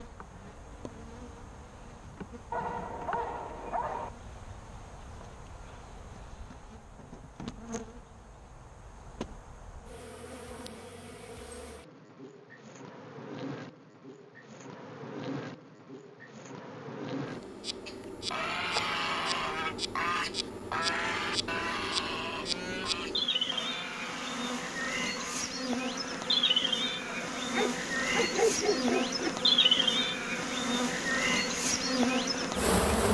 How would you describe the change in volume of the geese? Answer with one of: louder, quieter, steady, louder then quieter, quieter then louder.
quieter.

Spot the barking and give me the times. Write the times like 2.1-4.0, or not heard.
2.5-4.1, 27.5-29.3.